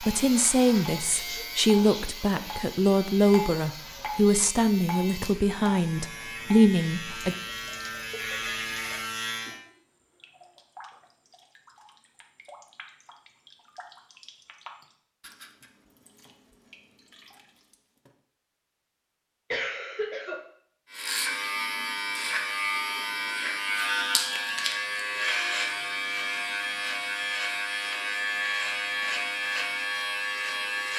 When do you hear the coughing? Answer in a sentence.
You can hear the coughing from 1.1 to 2.5 s and from 19.5 to 20.4 s.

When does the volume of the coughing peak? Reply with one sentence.
The loudest moment of the coughing is at 20 seconds.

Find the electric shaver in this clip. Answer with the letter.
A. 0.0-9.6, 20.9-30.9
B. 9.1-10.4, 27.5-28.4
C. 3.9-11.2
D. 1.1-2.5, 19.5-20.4
A.